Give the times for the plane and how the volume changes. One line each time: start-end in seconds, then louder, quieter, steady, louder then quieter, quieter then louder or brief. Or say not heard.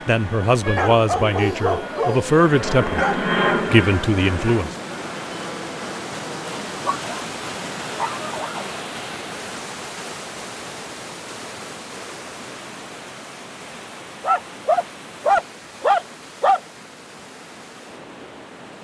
0.0-6.7 louder then quieter.